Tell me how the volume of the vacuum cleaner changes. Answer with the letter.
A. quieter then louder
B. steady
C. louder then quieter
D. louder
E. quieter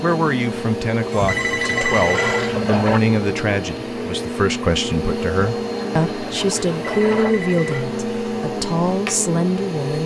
B.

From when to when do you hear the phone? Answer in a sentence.
You can hear the phone from 1.1 to 2.5 s and from 6.9 to 7.8 s.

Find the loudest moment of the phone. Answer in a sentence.
The volume of the phone peaks at 2 seconds.